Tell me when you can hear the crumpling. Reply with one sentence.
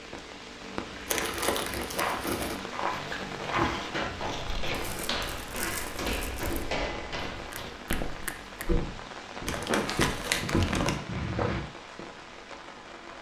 The crumpling can be heard from 1.1 to 2.6 s, from 4.7 to 6.7 s and from 9.4 to 11.0 s.